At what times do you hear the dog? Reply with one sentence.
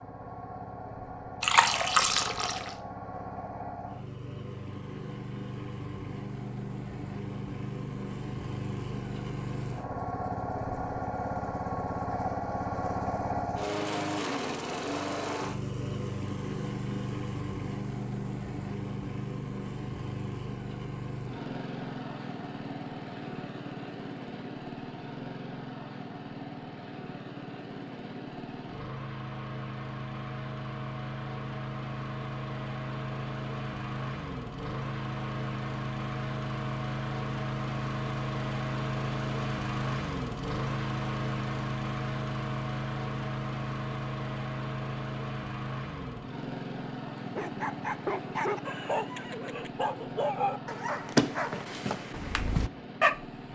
The dog can be heard from 47.1 to 53.2 s.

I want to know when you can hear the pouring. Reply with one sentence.
You can hear the pouring from 1.4 to 2.8 s.